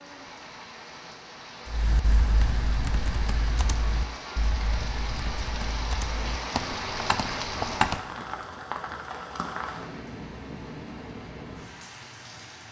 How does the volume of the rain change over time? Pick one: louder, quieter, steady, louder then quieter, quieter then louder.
louder then quieter.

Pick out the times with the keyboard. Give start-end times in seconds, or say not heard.
1.6-8.1.